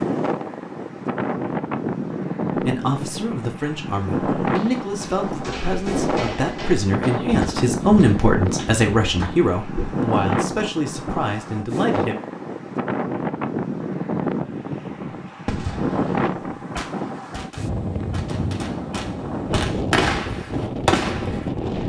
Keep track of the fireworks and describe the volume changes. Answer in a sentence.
The volume of the fireworks goes down, then up.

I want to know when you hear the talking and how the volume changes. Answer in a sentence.
You can hear the talking from 2.5 to 12.2 s, getting louder then quieter.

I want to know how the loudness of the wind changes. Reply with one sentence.
The loudness of the wind stays about the same.